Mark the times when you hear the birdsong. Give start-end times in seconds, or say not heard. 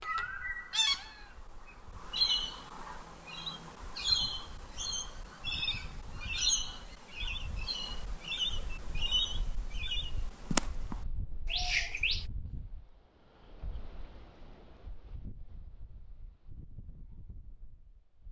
0.0-12.2.